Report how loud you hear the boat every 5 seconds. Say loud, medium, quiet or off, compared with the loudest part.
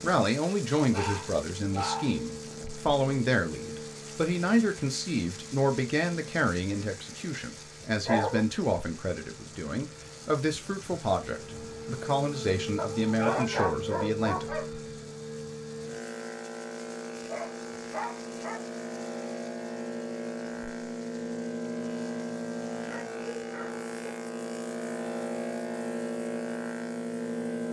medium, quiet, medium, medium, loud, loud.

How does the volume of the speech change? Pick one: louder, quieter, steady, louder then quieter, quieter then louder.
steady.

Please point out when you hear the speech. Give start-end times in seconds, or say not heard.
0.0-14.4.